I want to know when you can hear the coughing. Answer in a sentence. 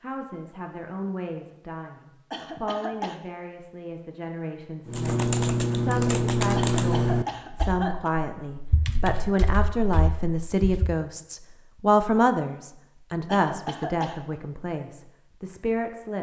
You can hear the coughing from 2.3 to 3.2 s, from 6.5 to 8.1 s and from 13.2 to 14.2 s.